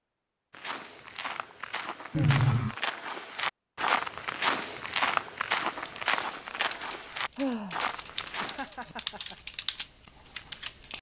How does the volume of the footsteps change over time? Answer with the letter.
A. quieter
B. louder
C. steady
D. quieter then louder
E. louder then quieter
E.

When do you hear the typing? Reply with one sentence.
The typing can be heard from 5.7 to 10.9 s.